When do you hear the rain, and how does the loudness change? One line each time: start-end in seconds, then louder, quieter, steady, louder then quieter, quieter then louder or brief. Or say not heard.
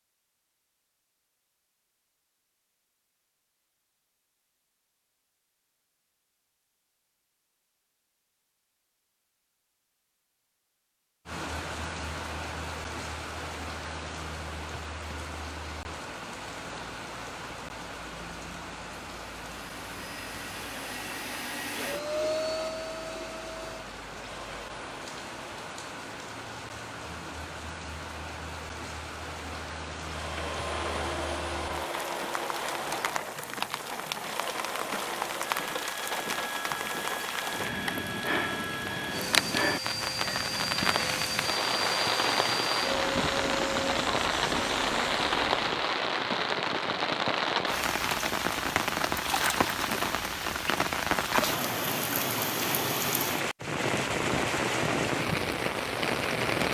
11.2-56.6 louder.